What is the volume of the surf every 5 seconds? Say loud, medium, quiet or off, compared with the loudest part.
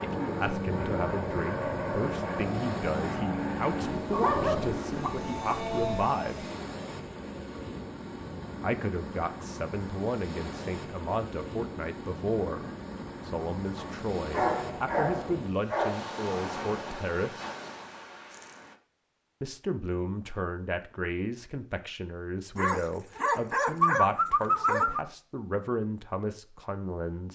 loud, loud, loud, loud, off, off.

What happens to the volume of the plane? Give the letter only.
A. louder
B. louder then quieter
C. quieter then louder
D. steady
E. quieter
C.